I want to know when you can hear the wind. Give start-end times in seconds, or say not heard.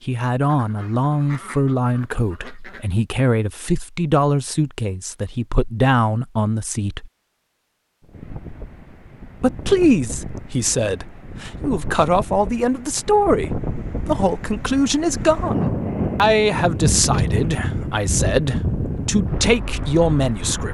8.0-20.6.